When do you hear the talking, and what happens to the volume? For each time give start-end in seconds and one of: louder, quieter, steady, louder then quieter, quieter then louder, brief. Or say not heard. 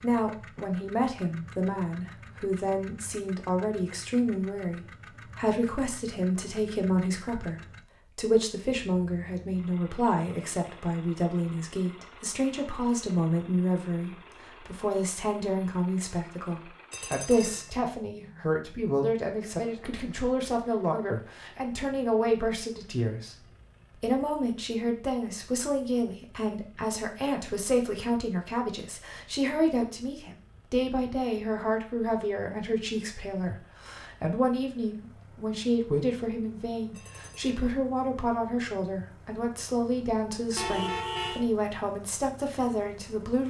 0.0-23.4 steady
23.9-43.4 steady.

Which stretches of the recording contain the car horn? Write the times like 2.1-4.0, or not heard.
40.5-41.5.